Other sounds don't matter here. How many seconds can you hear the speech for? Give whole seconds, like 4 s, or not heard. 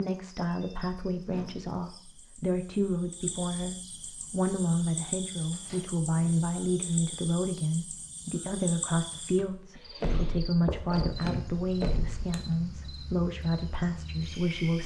15 s.